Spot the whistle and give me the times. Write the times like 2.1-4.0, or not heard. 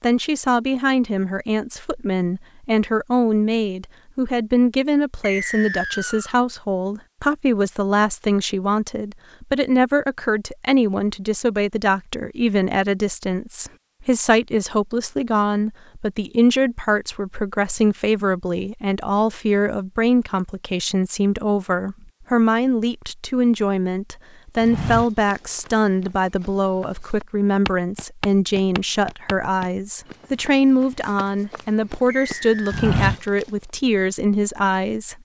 5.2-6.3, 32.0-32.9.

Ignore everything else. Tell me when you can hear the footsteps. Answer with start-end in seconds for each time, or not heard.
24.6-33.5.